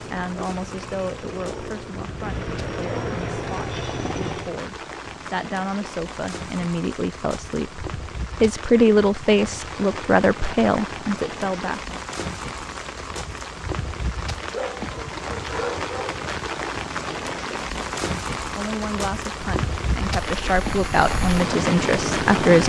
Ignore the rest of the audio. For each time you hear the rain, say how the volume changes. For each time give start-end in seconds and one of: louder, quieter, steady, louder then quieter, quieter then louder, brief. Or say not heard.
0.0-22.6 louder.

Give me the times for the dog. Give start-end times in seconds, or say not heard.
14.5-16.2.